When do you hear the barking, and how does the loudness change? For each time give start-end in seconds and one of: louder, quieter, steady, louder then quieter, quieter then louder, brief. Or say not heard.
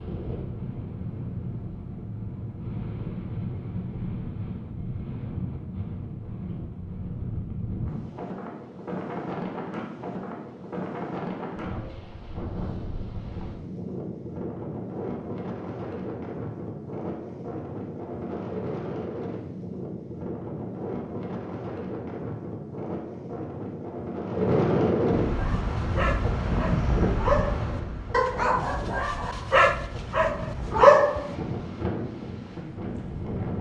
25.4-31.4 louder.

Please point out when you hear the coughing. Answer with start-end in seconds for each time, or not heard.
not heard.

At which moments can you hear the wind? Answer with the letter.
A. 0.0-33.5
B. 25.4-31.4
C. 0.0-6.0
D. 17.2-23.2
A.